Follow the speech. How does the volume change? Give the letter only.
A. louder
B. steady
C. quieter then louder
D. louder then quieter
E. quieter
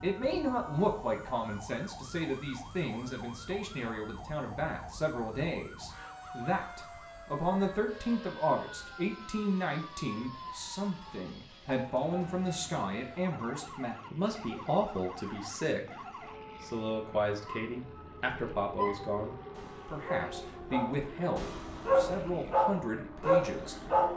B.